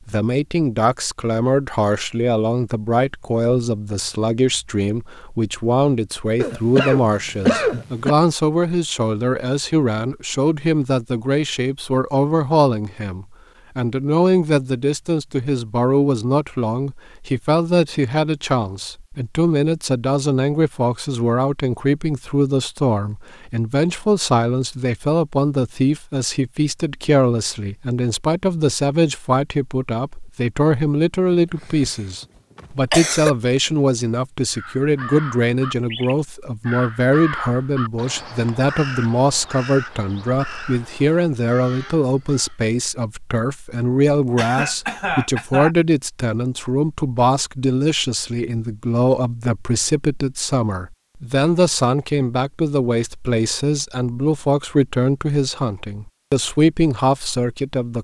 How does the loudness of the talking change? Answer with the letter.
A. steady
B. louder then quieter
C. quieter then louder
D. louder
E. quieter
A.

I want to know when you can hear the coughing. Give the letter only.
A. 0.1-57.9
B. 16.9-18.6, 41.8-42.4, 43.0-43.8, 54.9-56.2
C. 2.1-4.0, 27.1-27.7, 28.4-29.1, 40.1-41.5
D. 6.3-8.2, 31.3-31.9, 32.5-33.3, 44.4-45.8
D.